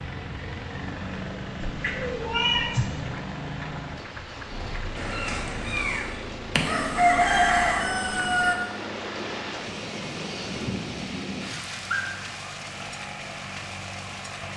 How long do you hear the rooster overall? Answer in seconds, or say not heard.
2 s.